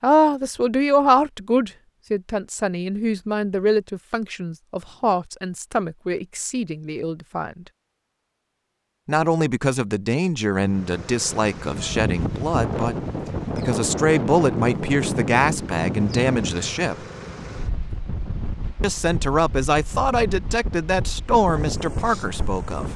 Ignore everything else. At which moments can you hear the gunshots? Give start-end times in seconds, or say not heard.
not heard.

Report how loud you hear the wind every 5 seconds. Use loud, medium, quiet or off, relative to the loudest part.
off, off, loud, loud, medium.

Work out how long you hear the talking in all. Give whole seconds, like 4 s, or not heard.
19 s.